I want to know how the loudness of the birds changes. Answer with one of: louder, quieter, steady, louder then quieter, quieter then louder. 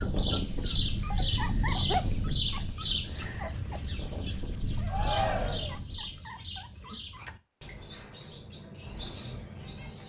quieter.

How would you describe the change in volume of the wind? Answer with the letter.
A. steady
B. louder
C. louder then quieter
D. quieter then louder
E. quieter
D.